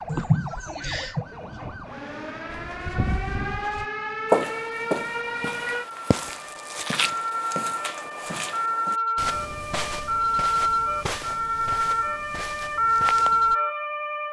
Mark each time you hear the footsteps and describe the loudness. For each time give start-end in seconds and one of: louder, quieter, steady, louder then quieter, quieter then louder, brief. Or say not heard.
2.5-13.6 quieter.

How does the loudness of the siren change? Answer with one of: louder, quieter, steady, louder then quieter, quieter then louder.
louder.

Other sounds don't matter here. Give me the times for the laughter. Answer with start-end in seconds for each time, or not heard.
0.1-1.2.